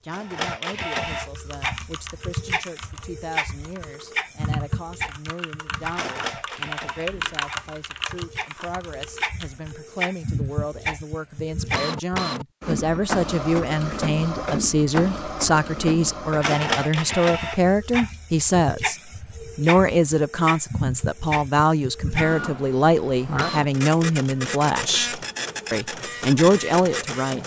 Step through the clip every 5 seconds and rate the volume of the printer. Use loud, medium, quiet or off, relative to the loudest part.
loud, medium, loud, loud, loud, loud.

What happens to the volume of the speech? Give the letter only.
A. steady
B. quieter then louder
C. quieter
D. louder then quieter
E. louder
E.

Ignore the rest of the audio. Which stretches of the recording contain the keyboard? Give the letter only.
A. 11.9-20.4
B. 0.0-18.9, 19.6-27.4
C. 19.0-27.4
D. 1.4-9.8
D.